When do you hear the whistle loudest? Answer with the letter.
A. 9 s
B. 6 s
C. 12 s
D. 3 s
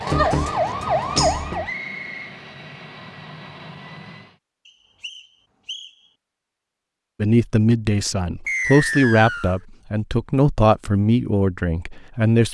A.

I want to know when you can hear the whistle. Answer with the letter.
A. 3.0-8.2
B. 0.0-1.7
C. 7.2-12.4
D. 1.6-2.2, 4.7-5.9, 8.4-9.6
D.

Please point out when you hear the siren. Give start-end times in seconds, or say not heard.
0.0-1.7.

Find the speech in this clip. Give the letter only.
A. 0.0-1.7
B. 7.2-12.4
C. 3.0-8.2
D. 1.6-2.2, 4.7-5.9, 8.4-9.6
B.